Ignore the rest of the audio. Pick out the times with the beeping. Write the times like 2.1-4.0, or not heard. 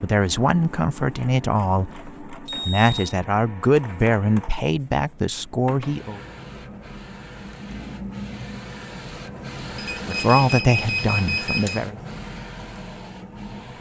2.5-3.1, 9.8-11.8.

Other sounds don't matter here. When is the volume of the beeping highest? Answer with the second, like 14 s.
11 s.